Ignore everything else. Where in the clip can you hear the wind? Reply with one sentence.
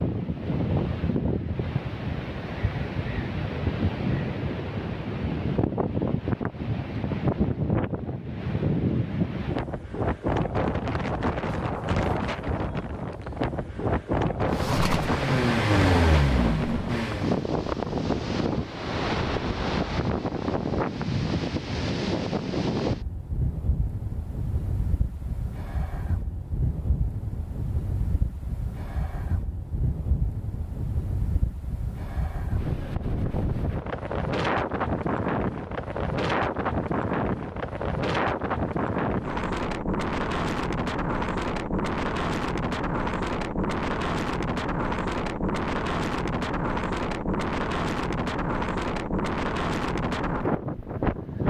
The wind can be heard from 0.0 to 51.4 s.